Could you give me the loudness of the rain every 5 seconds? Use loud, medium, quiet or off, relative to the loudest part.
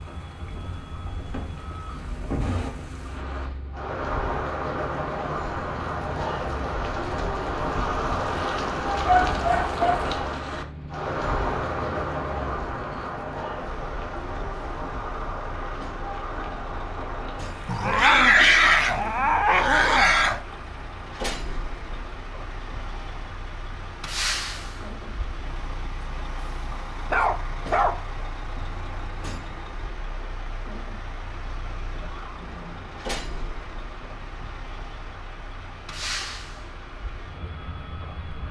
medium, loud, loud, medium, quiet, quiet, quiet, quiet.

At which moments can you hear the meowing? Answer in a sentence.
You can't hear the meowing here.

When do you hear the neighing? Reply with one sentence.
You can hear the neighing from 31.9 to 33.0 s.